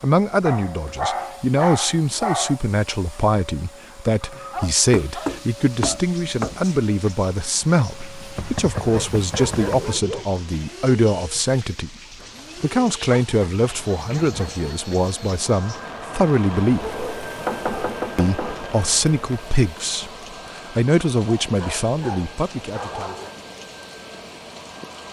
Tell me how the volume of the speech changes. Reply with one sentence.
The volume of the speech stays about the same.